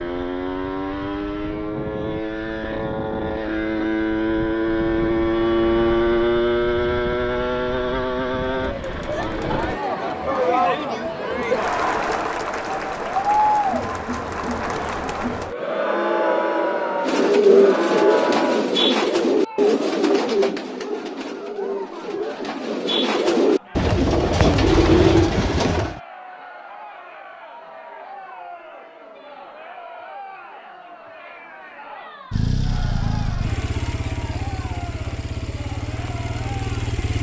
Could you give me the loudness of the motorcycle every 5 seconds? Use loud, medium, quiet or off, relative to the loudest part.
loud, loud, off, off, off, off, medium, medium.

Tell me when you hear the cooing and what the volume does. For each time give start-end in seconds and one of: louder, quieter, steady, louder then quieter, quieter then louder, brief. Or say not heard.
17.0-26.0 quieter then louder.